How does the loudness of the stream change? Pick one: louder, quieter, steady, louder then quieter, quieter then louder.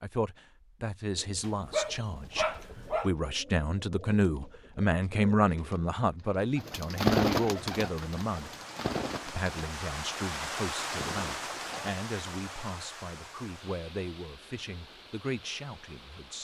louder then quieter.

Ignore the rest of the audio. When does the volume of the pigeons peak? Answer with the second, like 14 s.
7 s.